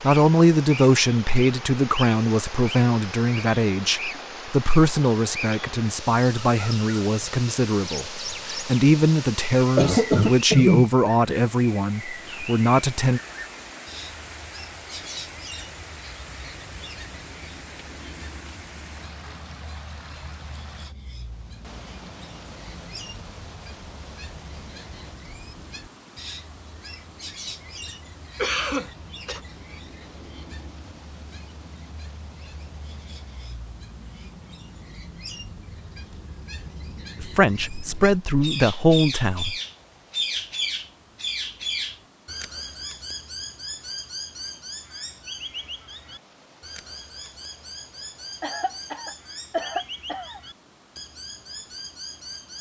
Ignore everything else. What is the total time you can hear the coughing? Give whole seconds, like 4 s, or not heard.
5 s.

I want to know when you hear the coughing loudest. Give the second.
11 s.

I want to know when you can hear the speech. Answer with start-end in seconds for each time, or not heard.
0.0-13.2, 37.2-39.5.